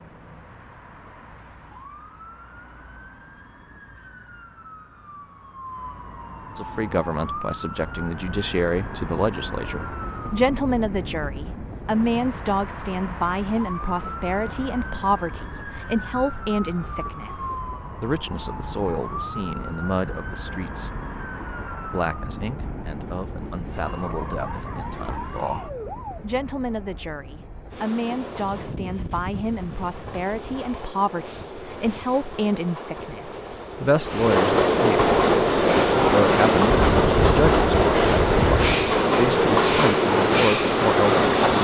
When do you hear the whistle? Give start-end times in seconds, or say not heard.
not heard.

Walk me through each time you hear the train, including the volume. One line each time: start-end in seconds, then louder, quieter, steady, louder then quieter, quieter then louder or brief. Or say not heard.
7.8-41.5 louder.